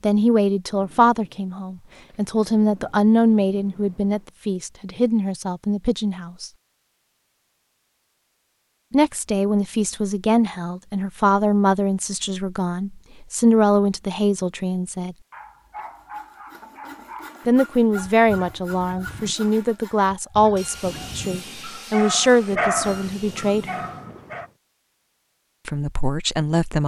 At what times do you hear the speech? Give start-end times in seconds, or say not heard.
0.0-6.5, 8.9-15.2, 17.4-23.8, 25.6-26.8.